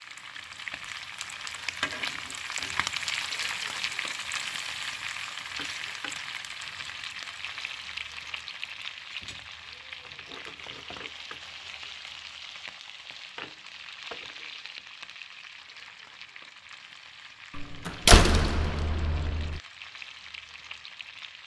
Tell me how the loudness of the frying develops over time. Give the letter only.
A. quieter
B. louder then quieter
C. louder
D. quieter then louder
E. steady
A.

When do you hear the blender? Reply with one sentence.
You can't hear the blender here.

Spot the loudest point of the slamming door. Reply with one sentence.
The volume of the slamming door peaks at 18 seconds.